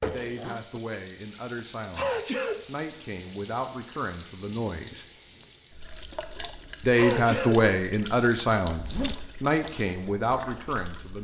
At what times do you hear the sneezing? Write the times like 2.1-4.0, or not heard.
1.9-2.6, 7.0-7.7.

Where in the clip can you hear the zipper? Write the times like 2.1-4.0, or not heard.
0.0-0.7, 8.7-9.4.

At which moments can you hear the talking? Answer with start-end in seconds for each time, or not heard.
0.0-5.0, 6.8-11.1.